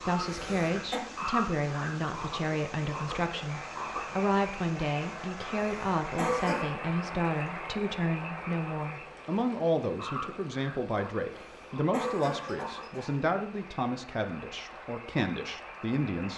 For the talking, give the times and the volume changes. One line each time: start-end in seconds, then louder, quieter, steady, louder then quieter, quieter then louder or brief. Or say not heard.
0.1-16.3 steady.